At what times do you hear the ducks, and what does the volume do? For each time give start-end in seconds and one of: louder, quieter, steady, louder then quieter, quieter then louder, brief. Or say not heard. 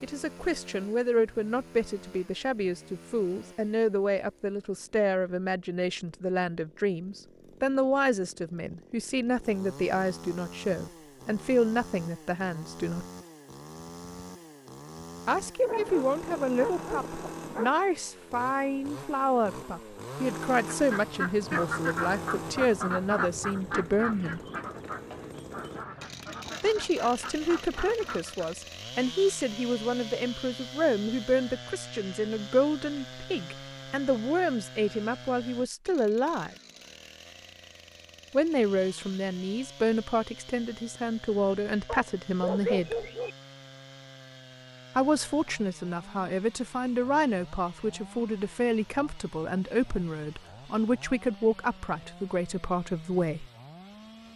20.6-28.5 quieter.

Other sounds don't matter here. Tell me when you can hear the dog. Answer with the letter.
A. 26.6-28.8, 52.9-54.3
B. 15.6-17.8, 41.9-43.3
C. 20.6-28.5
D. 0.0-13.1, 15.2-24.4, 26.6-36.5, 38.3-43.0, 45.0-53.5
B.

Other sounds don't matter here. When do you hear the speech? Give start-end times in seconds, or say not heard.
0.0-13.1, 15.2-24.4, 26.6-36.5, 38.3-43.0, 45.0-53.5.